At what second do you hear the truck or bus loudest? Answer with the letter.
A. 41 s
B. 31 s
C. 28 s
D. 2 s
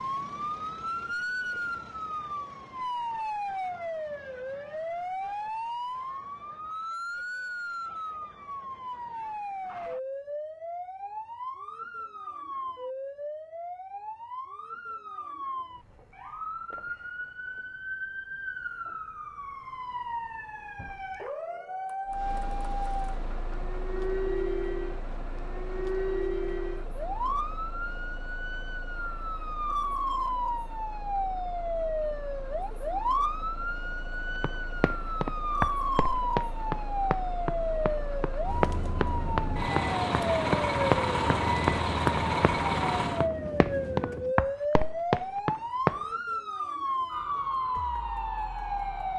A.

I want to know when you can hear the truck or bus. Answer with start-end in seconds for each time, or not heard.
22.1-43.3.